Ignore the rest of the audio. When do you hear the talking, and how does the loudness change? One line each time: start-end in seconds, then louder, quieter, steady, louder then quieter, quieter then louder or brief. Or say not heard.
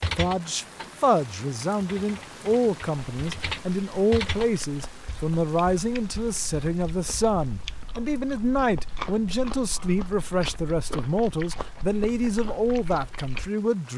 0.1-13.9 steady.